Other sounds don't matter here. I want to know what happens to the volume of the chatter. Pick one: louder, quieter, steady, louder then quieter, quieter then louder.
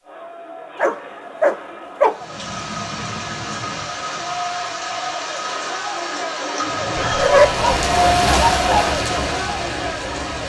louder.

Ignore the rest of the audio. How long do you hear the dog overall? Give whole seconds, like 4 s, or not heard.
3 s.